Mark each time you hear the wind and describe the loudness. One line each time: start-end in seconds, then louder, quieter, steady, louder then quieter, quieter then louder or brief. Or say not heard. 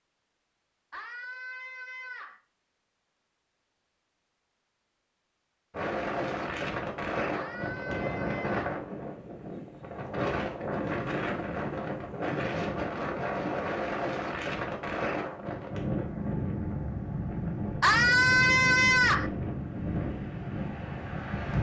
5.7-21.5 steady.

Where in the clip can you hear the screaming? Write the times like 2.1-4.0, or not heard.
0.9-2.4, 7.3-8.8, 17.8-19.3.